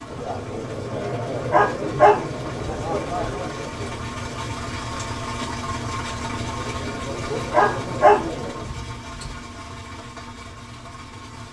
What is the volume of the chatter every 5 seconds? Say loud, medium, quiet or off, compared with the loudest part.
loud, loud, off.